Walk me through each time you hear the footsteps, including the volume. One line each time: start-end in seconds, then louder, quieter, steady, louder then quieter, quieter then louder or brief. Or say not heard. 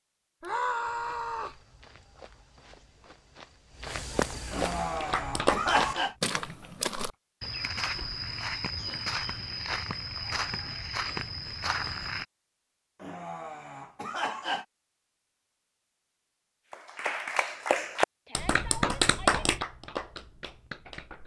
0.8-12.2 louder.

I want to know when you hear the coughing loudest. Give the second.
6 s.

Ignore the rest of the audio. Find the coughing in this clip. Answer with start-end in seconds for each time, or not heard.
4.5-6.2, 13.0-14.7.